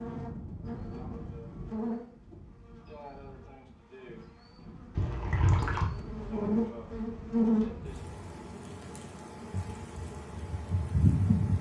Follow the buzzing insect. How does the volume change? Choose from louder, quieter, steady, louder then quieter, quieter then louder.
quieter then louder.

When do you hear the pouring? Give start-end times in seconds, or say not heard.
5.0-5.8.